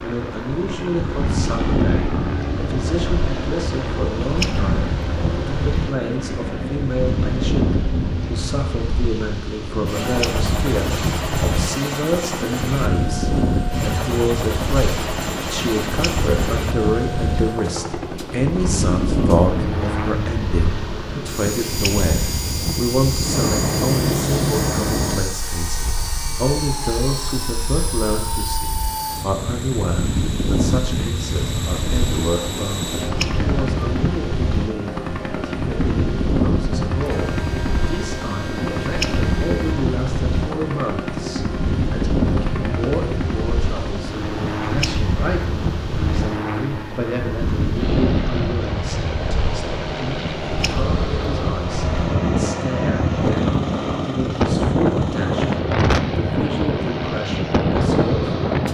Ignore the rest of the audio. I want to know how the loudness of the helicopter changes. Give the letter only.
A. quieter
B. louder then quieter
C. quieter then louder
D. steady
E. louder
D.